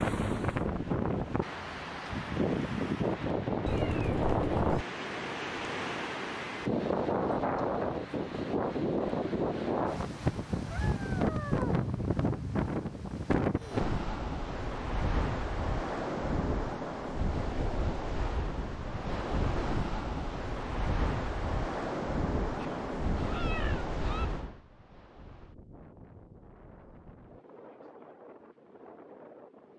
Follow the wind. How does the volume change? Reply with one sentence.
The loudness of the wind goes down.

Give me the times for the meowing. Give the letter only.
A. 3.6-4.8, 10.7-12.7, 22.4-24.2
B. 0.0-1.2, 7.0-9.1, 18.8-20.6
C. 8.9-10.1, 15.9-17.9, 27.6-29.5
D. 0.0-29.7
A.